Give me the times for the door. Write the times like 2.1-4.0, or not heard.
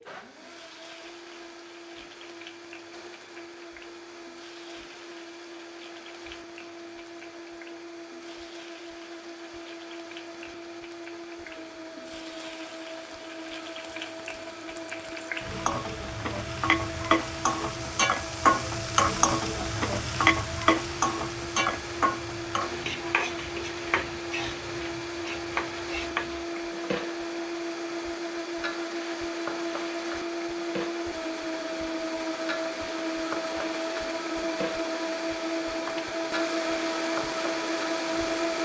not heard.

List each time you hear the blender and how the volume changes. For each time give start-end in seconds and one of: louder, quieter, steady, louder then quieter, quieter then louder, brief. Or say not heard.
0.0-38.6 louder.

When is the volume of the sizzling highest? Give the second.
19 s.